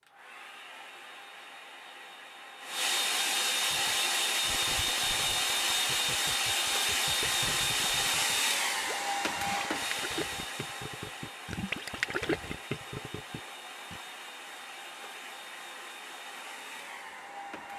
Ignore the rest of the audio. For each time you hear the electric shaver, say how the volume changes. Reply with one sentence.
The electric shaver can't be heard in this clip.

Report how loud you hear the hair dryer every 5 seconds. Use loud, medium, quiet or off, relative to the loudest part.
loud, loud, quiet, quiet.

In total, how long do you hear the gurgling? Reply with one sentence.
You can hear the gurgling for 10 seconds altogether.